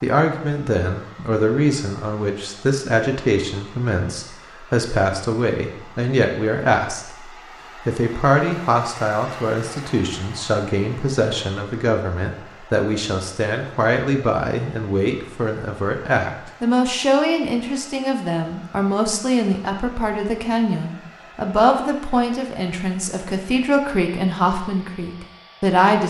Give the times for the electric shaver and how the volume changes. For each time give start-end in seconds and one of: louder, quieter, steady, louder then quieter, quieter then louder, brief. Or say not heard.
not heard.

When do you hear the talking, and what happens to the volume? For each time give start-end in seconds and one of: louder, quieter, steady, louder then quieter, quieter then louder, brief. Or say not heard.
0.0-7.2 steady
7.8-26.0 steady.